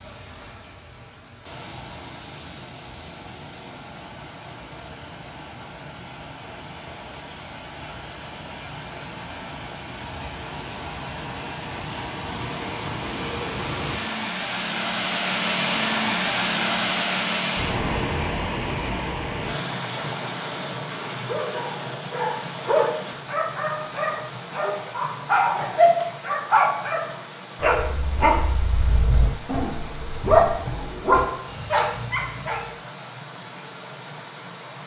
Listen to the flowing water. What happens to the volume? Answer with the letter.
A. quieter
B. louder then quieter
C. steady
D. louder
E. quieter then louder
B.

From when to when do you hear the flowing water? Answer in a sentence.
The flowing water can be heard from 0.0 to 34.8 s.